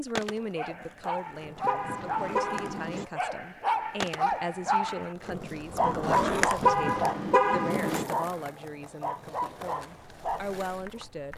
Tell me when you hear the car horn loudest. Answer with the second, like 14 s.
7 s.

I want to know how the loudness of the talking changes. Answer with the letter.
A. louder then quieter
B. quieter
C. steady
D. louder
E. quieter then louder
C.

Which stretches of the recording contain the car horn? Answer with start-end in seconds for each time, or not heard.
1.6-3.0, 6.6-8.1.